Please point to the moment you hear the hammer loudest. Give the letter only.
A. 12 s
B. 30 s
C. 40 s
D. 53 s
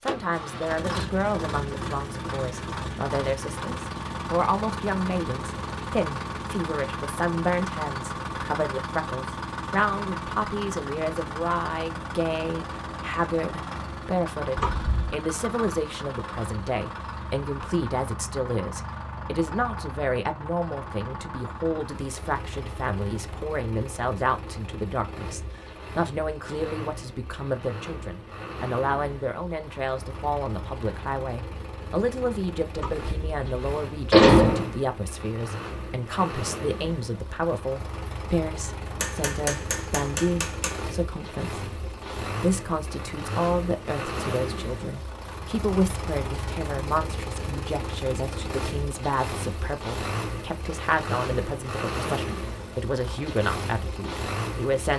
C.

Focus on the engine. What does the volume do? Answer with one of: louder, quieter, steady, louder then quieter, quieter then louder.
quieter then louder.